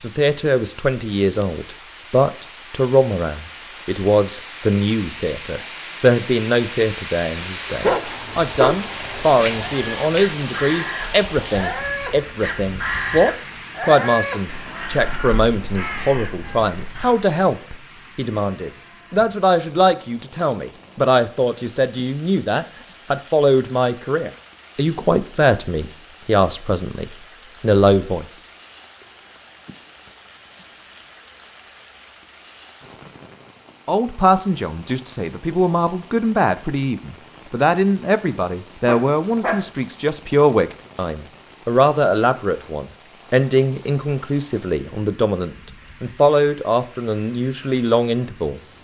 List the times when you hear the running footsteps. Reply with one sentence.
The running footsteps can't be heard in this clip.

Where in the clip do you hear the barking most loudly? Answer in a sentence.
The loudest moment of the barking is at 8 seconds.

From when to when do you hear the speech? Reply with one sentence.
You can hear the speech from 0.0 to 28.4 s and from 33.9 to 48.6 s.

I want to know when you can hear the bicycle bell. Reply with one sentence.
You can't hear the bicycle bell here.